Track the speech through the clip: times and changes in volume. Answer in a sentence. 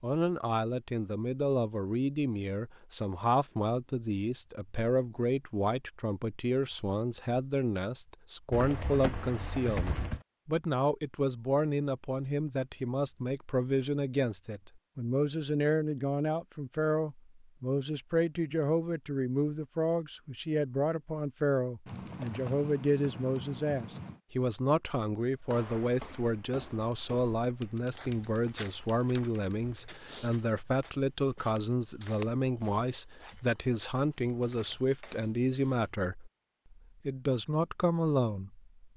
You can hear the speech from 0.0 to 38.7 s, at a steady volume.